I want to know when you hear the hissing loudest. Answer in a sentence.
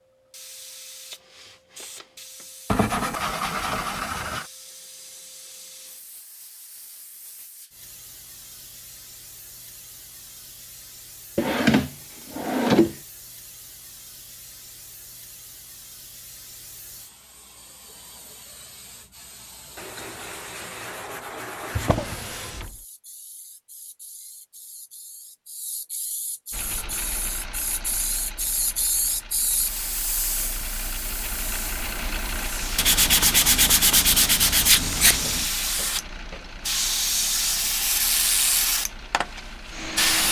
The volume of the hissing peaks at 38 seconds.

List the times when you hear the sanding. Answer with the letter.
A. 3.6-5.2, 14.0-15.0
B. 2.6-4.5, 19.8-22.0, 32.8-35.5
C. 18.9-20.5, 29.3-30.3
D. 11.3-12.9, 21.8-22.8
B.